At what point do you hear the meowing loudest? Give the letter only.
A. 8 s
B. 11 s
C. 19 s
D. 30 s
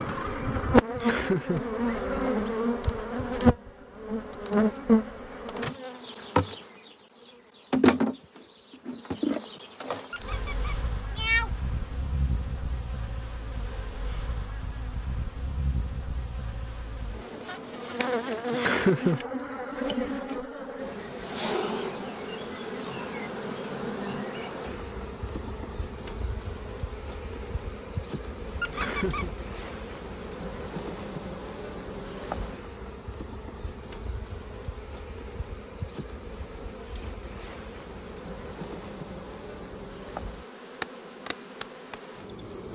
B.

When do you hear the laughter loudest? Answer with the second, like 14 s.
19 s.